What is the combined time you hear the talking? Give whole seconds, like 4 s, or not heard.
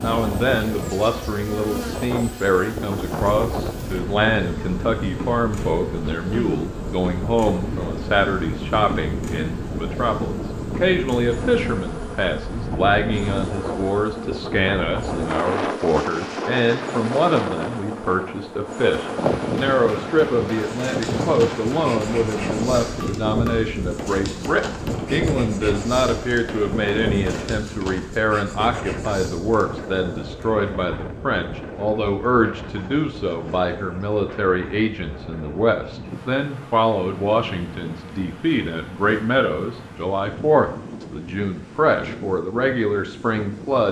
44 s.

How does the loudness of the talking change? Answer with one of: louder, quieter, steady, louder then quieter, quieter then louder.
steady.